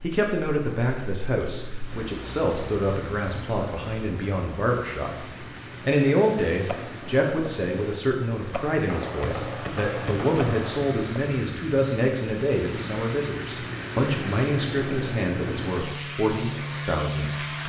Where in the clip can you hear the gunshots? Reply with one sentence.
The gunshots can be heard from 8.8 to 10.8 s.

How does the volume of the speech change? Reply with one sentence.
The loudness of the speech stays about the same.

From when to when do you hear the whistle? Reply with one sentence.
The whistle can't be heard in this clip.